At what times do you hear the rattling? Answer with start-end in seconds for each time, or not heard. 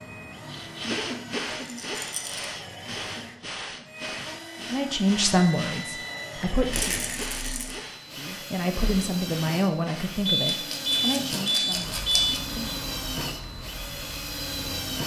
1.6-2.5, 6.7-7.8, 10.5-12.4.